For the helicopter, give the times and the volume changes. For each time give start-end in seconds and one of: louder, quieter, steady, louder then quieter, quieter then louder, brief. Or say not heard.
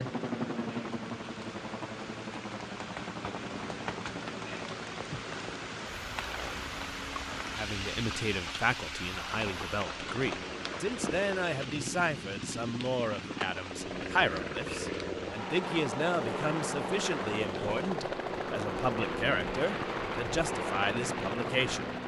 0.0-22.0 quieter then louder.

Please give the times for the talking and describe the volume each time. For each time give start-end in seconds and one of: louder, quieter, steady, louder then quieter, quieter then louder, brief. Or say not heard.
7.5-21.9 steady.